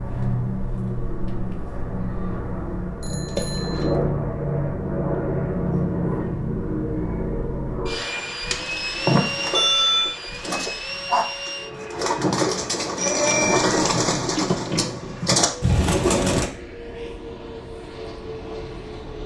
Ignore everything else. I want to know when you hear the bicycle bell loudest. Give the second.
10 s.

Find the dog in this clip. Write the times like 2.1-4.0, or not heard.
not heard.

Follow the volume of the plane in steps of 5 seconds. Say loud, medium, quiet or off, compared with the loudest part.
loud, loud, medium, medium.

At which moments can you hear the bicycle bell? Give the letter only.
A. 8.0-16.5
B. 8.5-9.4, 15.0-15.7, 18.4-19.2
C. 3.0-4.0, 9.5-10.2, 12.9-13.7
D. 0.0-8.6
C.